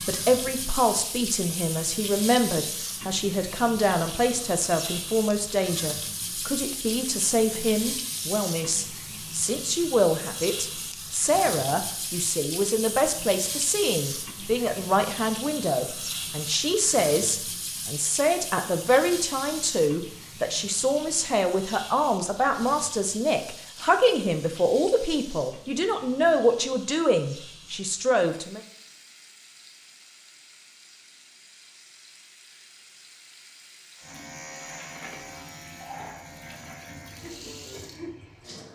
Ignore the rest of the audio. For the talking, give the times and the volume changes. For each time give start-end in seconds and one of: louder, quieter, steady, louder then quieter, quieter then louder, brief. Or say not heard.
0.1-28.6 steady.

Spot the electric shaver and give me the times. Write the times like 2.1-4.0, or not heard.
34.0-37.5.